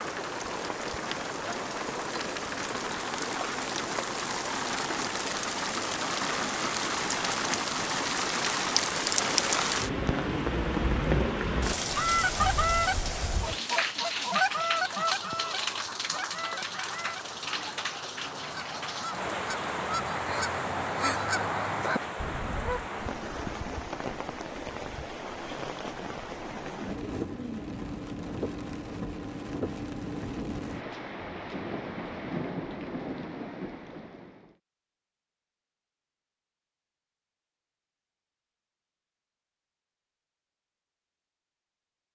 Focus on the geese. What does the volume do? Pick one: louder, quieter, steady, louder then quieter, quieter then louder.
quieter then louder.